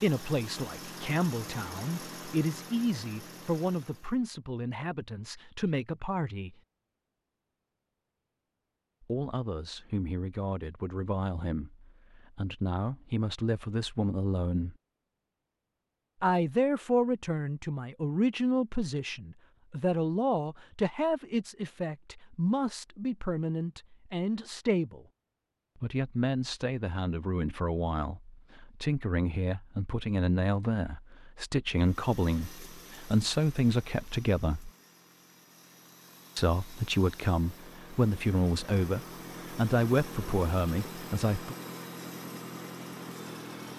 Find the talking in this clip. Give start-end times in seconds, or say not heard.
0.0-6.6, 9.0-14.8, 16.2-25.1, 25.8-34.7, 36.4-41.5.